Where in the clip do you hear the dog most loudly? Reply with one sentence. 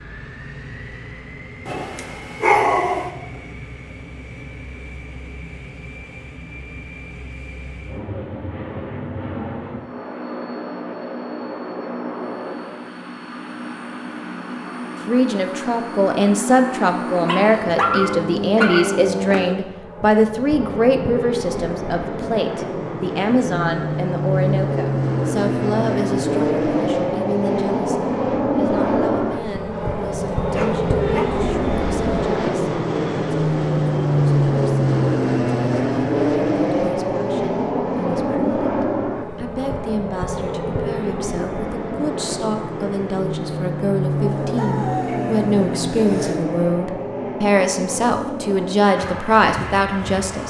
The loudest moment of the dog is at 3 seconds.